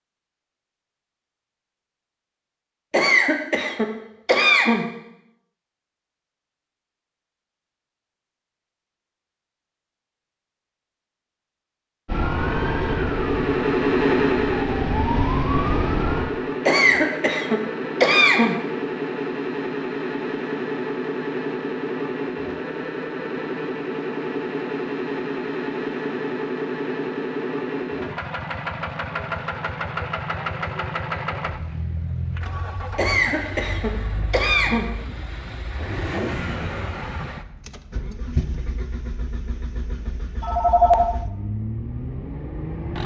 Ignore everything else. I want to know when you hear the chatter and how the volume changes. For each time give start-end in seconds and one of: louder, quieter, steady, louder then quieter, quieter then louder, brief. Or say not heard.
not heard.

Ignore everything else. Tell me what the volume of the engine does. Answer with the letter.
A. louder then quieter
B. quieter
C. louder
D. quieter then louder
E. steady
B.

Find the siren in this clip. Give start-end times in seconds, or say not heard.
12.1-16.2.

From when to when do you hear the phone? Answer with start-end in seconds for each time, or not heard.
40.4-41.1.